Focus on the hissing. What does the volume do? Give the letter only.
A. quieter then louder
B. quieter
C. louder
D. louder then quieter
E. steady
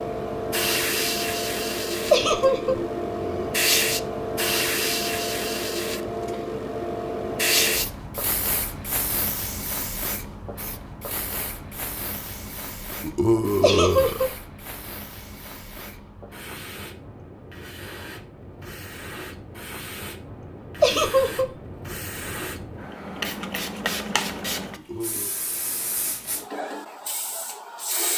A.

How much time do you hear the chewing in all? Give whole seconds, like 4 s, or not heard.
not heard.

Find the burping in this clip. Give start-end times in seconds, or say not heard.
2.6-3.5, 13.0-14.2, 24.8-25.4.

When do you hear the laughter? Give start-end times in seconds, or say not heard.
2.1-2.8, 13.6-14.3, 20.8-21.5.